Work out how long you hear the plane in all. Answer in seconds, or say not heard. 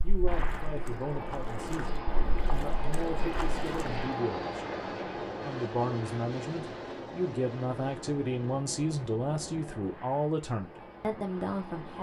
12 s.